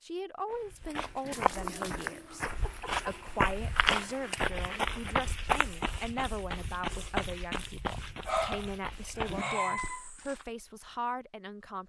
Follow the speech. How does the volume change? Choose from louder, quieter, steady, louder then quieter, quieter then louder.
steady.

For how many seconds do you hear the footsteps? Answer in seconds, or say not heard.
10 s.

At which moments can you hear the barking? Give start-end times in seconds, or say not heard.
1.2-3.0, 7.7-10.1.